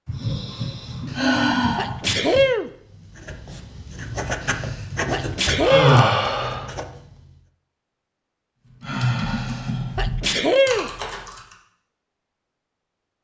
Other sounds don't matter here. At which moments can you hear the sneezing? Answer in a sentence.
You can hear the sneezing from 1.1 to 2.7 s, from 4.5 to 6.0 s and from 9.3 to 10.9 s.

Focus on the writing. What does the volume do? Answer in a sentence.
The loudness of the writing goes up, then down.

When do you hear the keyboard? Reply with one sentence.
The keyboard can be heard from 8.8 to 11.6 s.